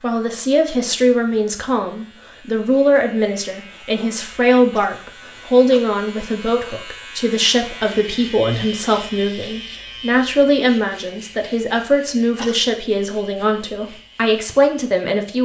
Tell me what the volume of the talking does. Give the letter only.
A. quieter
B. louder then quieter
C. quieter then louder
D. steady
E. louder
D.